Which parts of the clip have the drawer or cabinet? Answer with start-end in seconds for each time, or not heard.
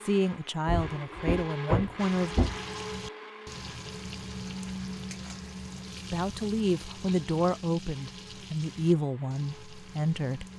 0.7-2.6.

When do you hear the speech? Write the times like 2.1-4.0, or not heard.
0.0-2.4, 6.1-10.4.